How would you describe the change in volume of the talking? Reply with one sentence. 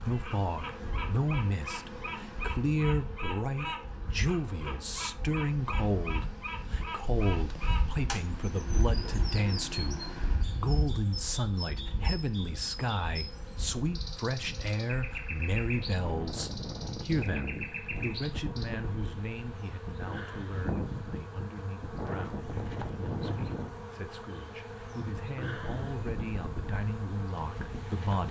The loudness of the talking goes down.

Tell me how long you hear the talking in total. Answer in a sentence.
The talking can be heard for 28 seconds in total.